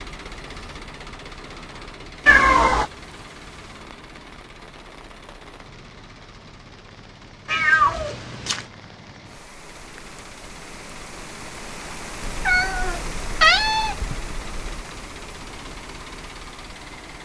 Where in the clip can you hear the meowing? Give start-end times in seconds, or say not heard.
2.2-2.9, 7.5-8.7, 12.2-14.6.